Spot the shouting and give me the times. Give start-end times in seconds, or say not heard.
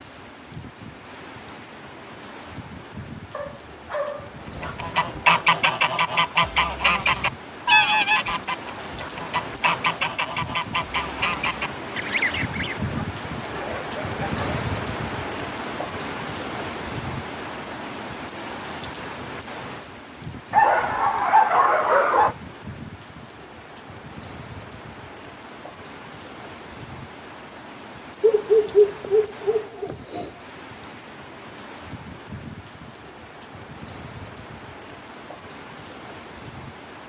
not heard.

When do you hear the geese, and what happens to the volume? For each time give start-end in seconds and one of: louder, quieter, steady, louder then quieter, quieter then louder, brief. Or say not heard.
4.5-12.8 quieter.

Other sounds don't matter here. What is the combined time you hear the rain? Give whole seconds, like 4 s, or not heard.
37 s.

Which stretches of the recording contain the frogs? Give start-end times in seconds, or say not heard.
not heard.